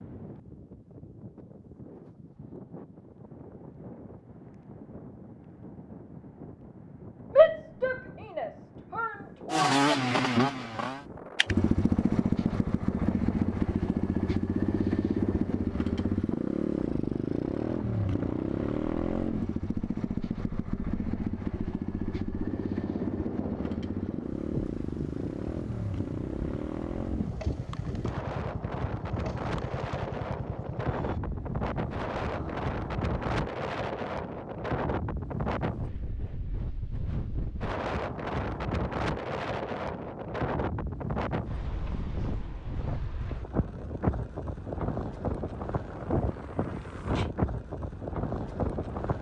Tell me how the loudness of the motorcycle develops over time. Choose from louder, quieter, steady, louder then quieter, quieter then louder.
quieter.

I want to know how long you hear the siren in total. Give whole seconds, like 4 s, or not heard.
not heard.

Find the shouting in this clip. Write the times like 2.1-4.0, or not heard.
7.3-9.8.